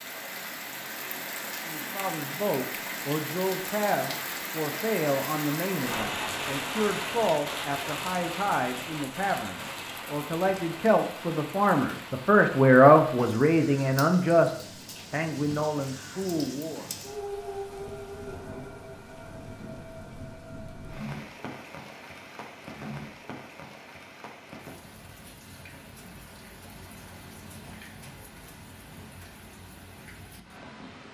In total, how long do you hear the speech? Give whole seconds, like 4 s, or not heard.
15 s.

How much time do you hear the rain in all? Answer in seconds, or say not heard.
31 s.